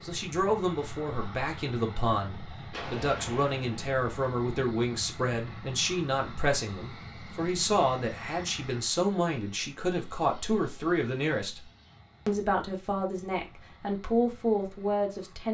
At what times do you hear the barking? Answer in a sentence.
The barking can't be heard in this clip.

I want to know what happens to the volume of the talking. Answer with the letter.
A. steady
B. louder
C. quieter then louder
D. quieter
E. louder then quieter
A.